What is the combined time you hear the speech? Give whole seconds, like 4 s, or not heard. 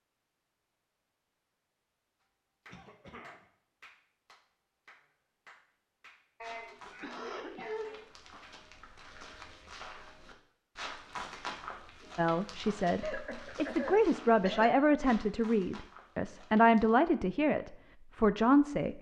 7 s.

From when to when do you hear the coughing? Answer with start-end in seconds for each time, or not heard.
2.6-3.5, 6.4-8.1, 12.9-14.7.